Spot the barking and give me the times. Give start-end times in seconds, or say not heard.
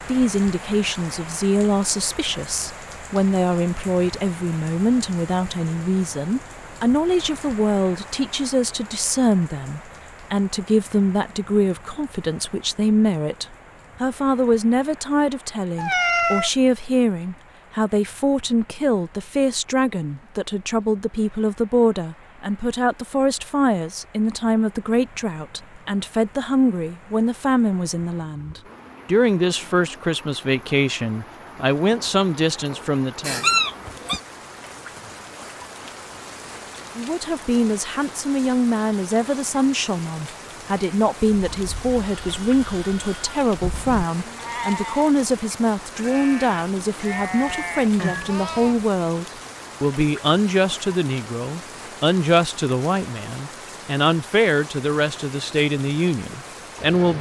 not heard.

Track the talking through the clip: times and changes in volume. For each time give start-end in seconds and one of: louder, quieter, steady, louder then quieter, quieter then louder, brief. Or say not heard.
0.1-33.5 steady
37.0-57.1 steady.